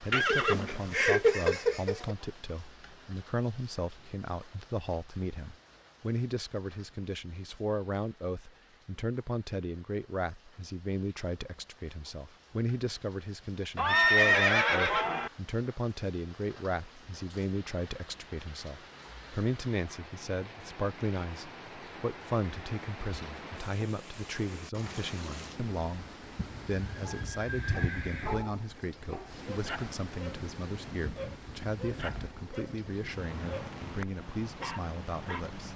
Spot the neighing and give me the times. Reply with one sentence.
You can hear the neighing from 0.1 to 2.1 s, from 13.8 to 15.3 s and from 26.4 to 28.4 s.